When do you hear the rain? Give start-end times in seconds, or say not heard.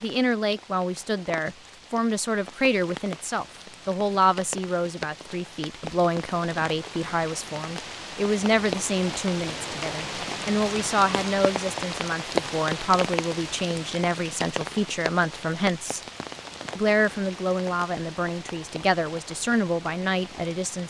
0.0-20.8.